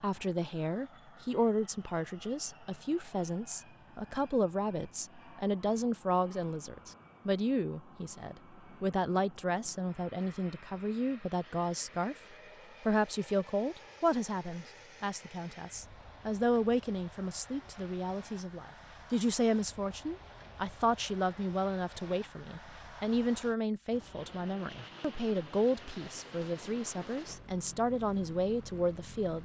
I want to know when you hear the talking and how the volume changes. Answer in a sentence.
The talking can be heard from 0.0 to 12.2 s, at a steady volume; and from 12.8 to 29.4 s, at a steady volume.